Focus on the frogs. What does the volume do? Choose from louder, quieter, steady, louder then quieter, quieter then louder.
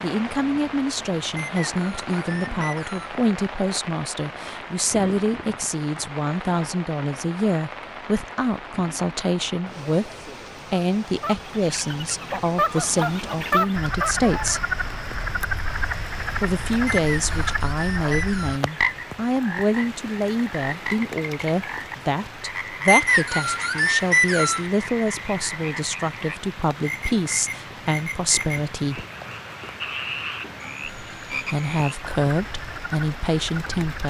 quieter.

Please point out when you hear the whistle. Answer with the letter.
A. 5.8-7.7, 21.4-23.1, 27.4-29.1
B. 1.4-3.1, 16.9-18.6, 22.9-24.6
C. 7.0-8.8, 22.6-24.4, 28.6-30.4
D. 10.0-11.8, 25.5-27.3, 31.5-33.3
B.